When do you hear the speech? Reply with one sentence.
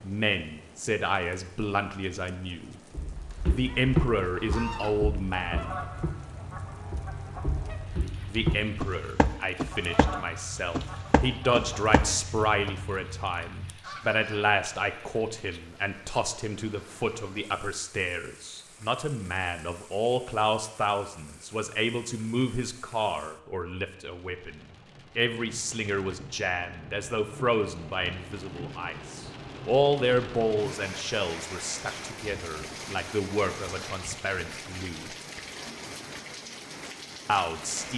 The speech can be heard from 0.0 to 2.8 s, from 3.5 to 5.8 s, from 8.2 to 35.1 s and from 37.2 to 37.9 s.